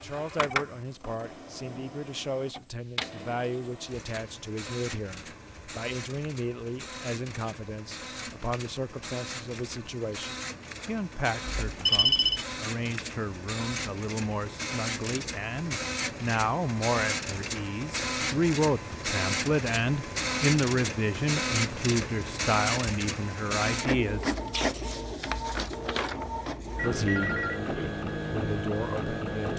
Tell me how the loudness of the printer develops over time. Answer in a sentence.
The loudness of the printer goes up.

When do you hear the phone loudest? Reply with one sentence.
The loudest moment of the phone is at 12 seconds.